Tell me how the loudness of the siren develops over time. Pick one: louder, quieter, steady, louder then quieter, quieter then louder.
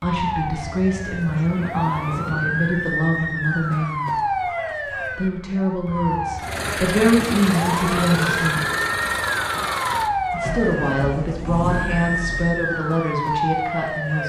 steady.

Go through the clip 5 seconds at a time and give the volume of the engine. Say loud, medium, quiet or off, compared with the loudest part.
off, loud, medium.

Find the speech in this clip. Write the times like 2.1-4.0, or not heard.
0.0-4.1, 5.2-8.7, 10.3-14.2.